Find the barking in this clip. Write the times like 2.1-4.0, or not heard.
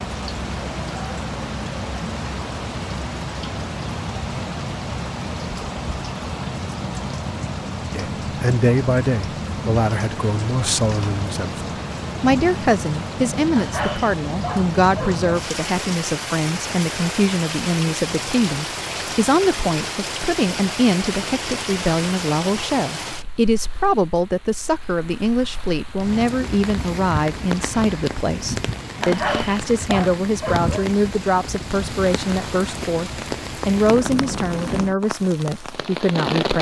13.6-15.3, 29.0-30.9.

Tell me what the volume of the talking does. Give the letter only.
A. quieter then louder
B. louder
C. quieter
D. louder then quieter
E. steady
E.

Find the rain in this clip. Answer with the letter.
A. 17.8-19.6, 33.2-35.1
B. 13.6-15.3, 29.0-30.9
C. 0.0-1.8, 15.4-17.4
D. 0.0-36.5
D.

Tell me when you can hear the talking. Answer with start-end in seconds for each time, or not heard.
7.9-36.5.